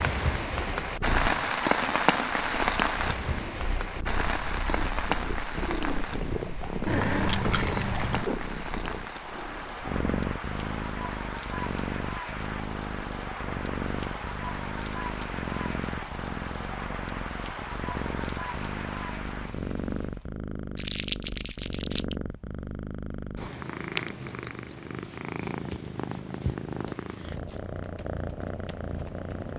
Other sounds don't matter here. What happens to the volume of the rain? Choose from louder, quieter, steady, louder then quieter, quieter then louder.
quieter.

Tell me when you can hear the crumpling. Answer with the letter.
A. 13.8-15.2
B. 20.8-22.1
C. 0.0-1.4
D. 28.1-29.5
B.